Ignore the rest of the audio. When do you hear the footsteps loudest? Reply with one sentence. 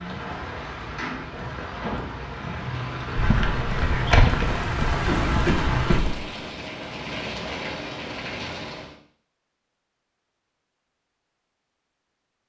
The loudest moment of the footsteps is at 4 seconds.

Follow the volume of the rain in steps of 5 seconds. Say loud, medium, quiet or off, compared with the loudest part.
loud, loud, off.